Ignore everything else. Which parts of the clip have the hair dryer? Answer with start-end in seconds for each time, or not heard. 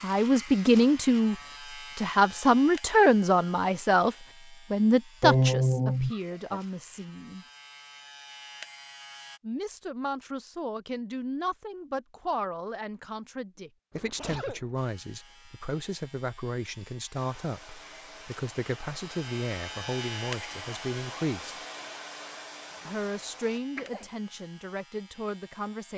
17.1-23.6.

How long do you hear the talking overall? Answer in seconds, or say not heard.
22 s.